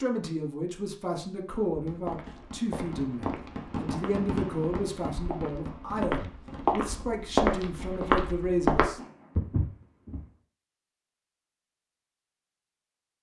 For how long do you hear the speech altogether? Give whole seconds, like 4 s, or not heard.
9 s.